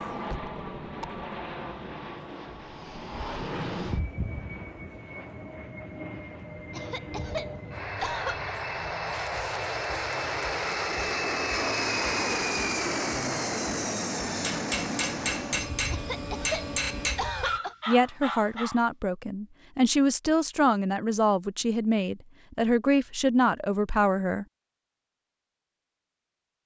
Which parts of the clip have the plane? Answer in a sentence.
The plane can be heard from 0.0 to 17.6 s.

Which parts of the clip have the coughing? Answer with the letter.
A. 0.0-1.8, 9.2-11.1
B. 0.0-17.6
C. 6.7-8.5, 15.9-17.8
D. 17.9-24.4
C.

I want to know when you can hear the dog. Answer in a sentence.
The dog can be heard from 17.4 to 18.9 s.